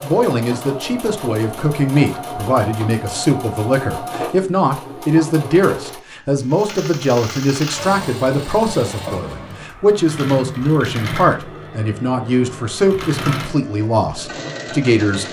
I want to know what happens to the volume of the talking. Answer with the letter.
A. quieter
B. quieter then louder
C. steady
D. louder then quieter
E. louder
C.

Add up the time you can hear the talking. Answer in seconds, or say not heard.
15 s.